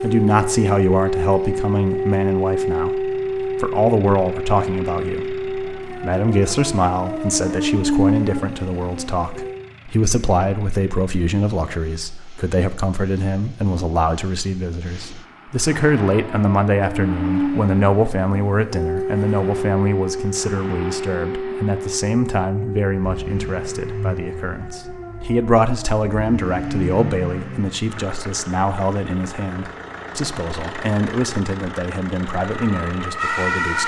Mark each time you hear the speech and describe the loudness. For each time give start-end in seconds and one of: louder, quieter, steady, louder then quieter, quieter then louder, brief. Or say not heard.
0.0-33.8 steady.